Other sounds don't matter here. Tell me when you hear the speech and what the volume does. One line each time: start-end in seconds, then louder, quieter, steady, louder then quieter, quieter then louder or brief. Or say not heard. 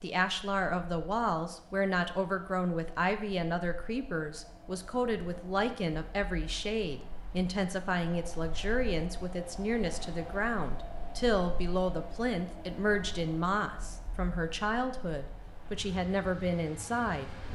0.0-17.4 steady.